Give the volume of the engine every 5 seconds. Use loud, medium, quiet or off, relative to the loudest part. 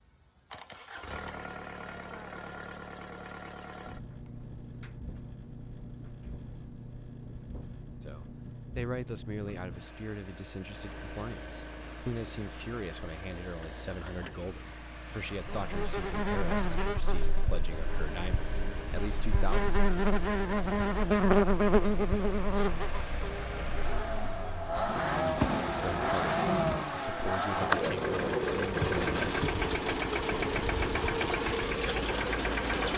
quiet, quiet, quiet, quiet, medium, loud, loud.